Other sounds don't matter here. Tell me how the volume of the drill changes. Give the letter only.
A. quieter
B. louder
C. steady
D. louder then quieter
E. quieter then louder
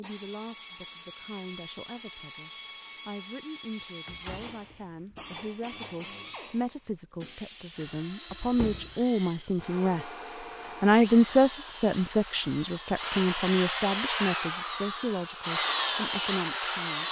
B.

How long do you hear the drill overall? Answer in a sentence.
You can hear the drill for 17 seconds altogether.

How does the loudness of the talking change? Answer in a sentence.
The volume of the talking goes up, then down.